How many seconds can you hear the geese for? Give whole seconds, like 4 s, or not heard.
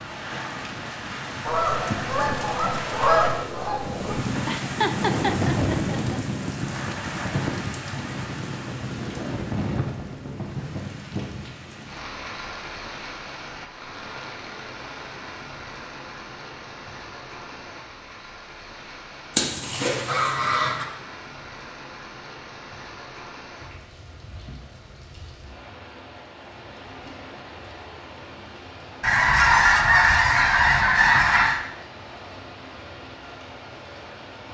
7 s.